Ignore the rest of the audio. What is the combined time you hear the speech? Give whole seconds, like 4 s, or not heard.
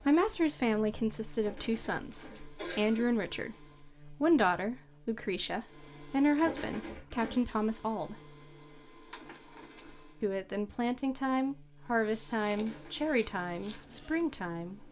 13 s.